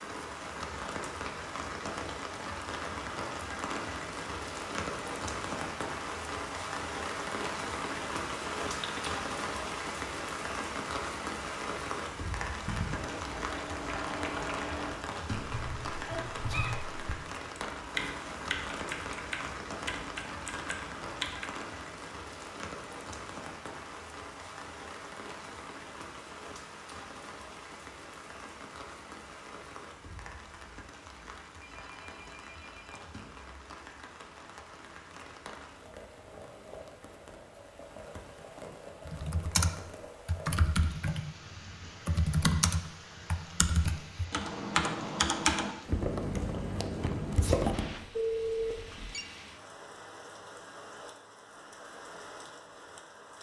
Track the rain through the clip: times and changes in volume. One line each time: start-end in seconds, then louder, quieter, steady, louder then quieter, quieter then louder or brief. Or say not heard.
0.0-53.3 quieter.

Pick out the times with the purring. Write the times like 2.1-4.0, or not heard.
not heard.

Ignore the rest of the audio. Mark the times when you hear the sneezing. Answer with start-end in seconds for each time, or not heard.
16.1-16.8, 47.2-47.7.